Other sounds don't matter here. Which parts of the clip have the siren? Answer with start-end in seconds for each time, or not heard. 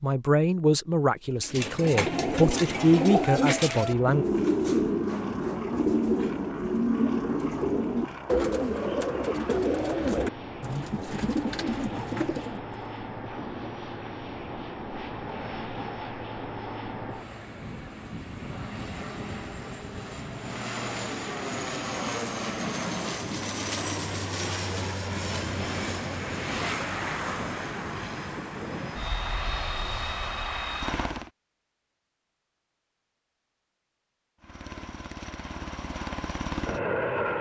not heard.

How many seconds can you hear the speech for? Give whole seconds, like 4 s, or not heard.
4 s.